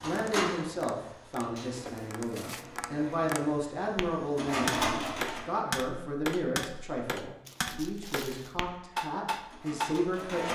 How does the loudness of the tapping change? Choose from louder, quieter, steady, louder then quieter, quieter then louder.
louder.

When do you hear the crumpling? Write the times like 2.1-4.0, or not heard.
1.7-2.6, 7.5-8.6.